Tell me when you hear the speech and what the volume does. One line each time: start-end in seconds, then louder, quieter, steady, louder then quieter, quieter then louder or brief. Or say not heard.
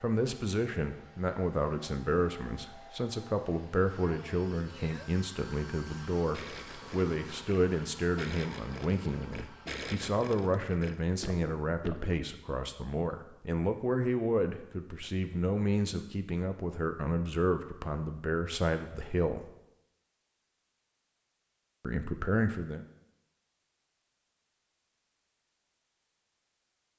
0.0-19.5 steady
21.8-22.9 brief.